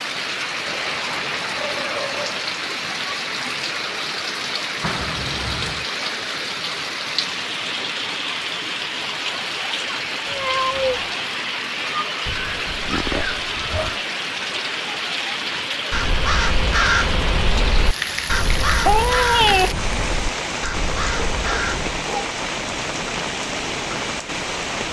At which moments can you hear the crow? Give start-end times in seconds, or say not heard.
15.4-21.9.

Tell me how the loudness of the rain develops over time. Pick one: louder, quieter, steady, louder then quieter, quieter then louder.
steady.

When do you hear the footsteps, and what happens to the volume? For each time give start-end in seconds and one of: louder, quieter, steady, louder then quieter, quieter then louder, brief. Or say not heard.
not heard.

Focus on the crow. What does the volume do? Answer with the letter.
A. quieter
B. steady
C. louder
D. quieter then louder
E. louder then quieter
A.